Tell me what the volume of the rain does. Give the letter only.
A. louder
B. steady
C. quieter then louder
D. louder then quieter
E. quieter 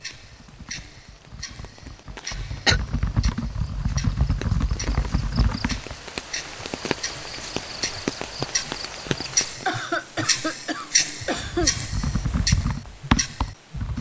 A.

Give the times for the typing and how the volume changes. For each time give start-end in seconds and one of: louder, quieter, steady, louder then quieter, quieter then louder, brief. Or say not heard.
0.1-6.0 louder
11.2-13.9 brief.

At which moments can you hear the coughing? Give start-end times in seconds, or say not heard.
2.1-2.8, 9.7-11.7.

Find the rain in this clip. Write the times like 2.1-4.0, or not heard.
0.0-9.7.